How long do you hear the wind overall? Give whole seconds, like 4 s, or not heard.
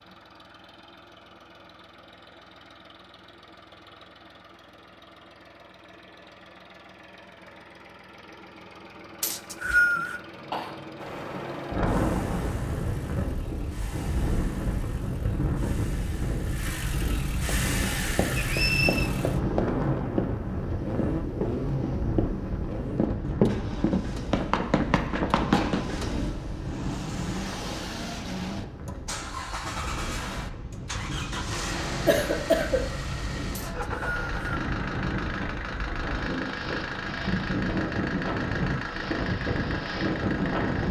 30 s.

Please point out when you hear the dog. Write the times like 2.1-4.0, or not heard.
not heard.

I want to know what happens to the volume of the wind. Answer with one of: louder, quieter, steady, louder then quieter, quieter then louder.
quieter then louder.